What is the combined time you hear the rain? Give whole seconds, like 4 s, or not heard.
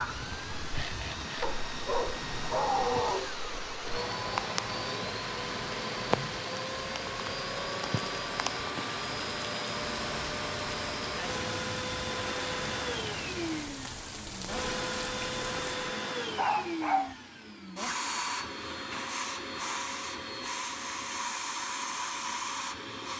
16 s.